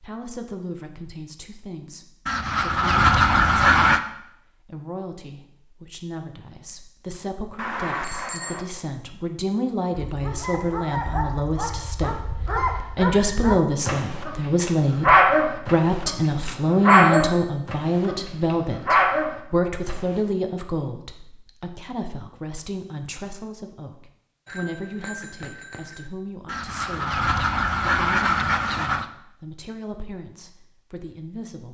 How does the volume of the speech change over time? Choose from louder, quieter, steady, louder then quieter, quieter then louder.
louder then quieter.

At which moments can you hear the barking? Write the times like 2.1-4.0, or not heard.
9.9-20.2.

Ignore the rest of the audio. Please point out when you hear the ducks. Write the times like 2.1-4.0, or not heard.
2.2-4.0, 26.4-29.1.